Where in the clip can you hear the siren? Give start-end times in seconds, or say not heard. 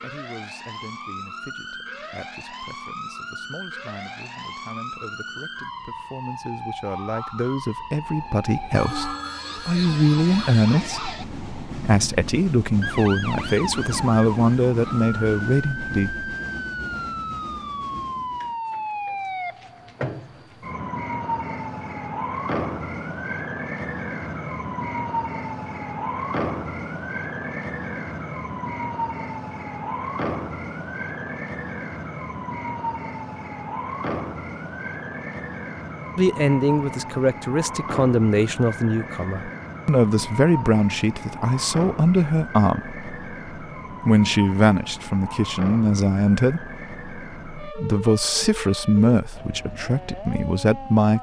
0.0-51.1.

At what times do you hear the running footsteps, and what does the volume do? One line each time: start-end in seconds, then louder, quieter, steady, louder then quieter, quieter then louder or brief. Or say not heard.
not heard.